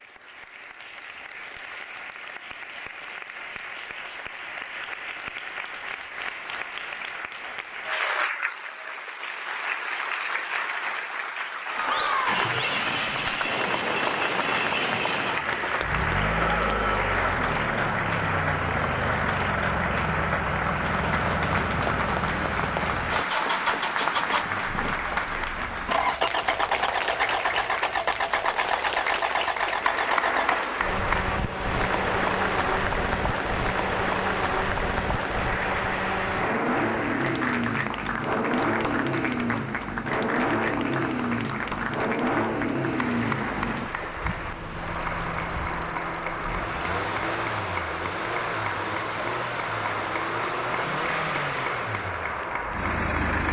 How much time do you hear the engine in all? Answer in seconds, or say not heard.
42 s.